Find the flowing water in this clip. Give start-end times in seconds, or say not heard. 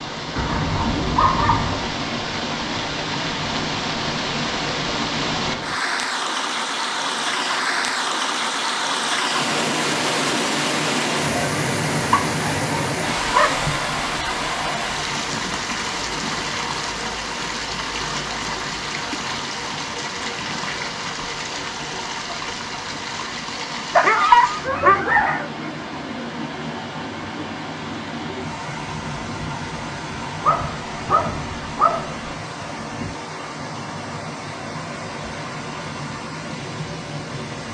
0.0-37.6.